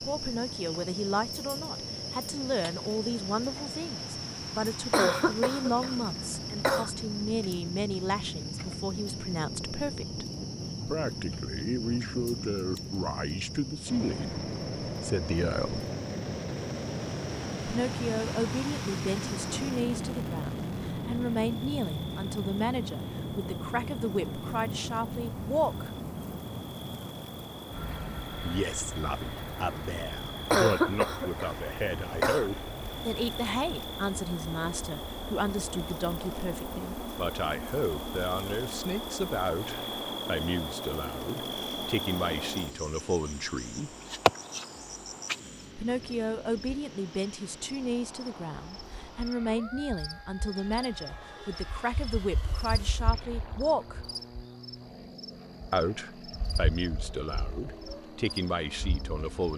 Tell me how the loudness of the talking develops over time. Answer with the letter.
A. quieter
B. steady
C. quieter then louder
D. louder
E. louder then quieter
B.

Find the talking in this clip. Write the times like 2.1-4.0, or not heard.
0.0-10.2, 10.8-15.8, 17.6-25.9, 28.4-43.9, 45.8-54.0, 55.7-59.5.